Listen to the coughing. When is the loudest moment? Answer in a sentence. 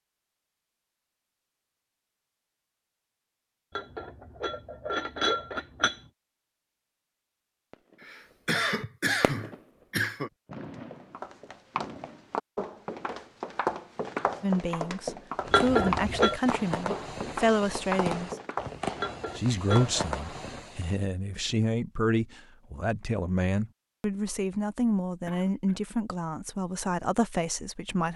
The volume of the coughing peaks at 9 seconds.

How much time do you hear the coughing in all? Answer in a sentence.
You can hear the coughing for 3 seconds altogether.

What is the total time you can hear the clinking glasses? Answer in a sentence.
The clinking glasses can be heard for 4 seconds in total.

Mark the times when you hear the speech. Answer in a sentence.
The speech can be heard from 14.4 to 18.4 s and from 19.4 to 28.1 s.